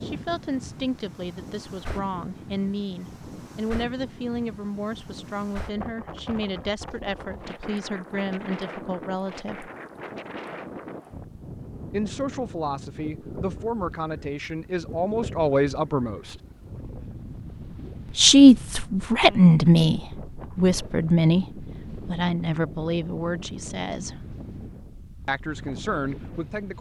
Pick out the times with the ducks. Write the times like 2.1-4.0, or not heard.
not heard.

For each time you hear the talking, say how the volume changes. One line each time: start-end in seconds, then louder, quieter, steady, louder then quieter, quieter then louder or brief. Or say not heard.
0.0-9.7 steady
11.9-16.4 louder
18.1-24.4 quieter
25.2-26.7 brief.